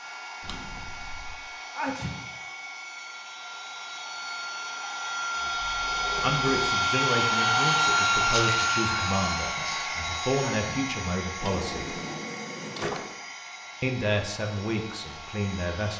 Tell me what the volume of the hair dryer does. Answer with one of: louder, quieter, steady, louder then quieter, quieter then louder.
louder then quieter.